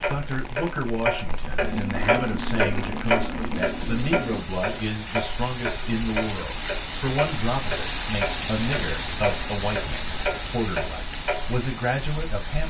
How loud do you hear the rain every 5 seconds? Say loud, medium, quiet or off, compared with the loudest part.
medium, loud, loud.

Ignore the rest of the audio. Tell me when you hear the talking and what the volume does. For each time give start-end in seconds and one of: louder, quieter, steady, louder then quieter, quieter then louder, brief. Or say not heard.
0.1-12.6 steady.